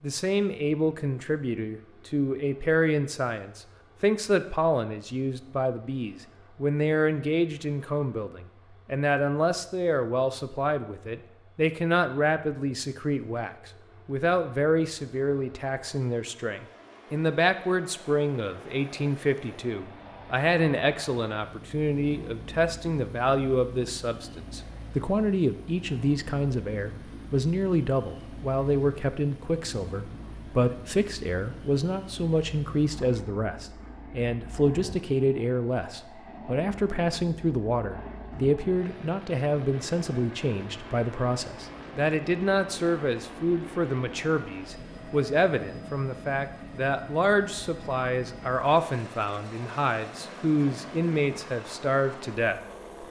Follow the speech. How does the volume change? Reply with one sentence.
The loudness of the speech stays about the same.